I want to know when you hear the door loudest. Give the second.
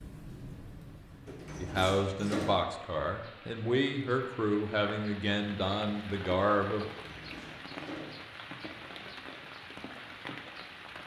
2 s.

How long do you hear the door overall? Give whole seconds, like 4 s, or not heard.
3 s.